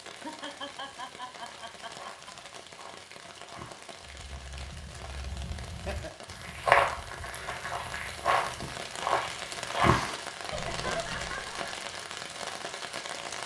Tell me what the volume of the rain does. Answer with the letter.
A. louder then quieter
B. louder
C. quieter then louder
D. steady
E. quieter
B.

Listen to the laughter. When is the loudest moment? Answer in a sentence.
The volume of the laughter peaks at 11 seconds.